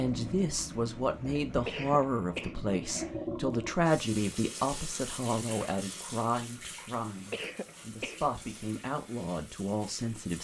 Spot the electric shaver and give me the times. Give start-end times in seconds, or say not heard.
not heard.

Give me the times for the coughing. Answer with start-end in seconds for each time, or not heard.
1.5-3.1, 7.2-8.7.